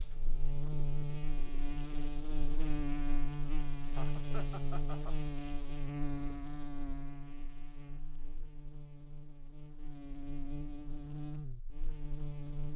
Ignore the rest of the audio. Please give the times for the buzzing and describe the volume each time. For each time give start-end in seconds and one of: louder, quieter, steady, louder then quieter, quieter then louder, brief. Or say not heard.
0.0-12.7 quieter then louder.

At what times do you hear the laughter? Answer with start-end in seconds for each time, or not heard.
4.0-5.2.